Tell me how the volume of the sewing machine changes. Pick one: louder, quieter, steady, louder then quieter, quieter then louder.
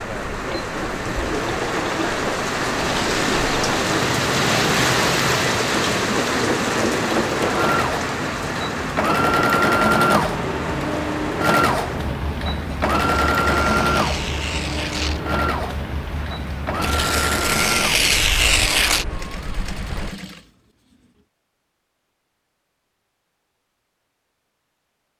louder then quieter.